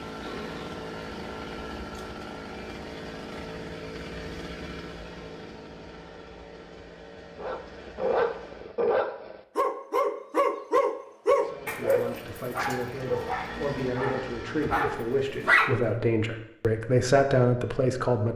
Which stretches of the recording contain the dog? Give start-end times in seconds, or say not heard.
7.3-15.8.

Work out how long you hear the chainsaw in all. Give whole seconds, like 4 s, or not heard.
13 s.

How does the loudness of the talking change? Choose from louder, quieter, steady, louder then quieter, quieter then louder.
louder.